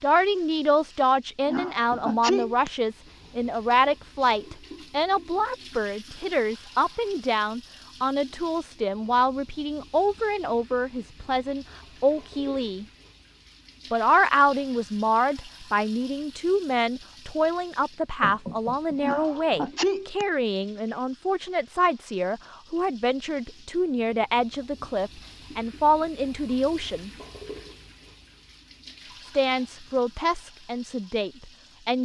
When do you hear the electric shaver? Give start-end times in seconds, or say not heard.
not heard.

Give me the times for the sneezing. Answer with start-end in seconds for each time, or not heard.
1.4-2.7, 19.0-20.2.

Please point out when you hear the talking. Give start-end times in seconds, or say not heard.
0.0-12.8, 13.9-27.1, 29.4-31.9.